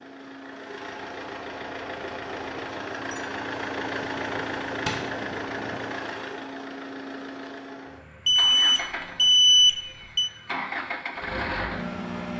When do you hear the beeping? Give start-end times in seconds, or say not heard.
8.2-10.3.